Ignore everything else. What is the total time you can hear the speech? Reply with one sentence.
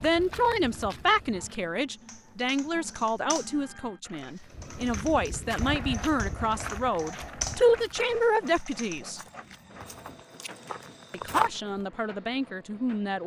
You can hear the speech for 11 seconds altogether.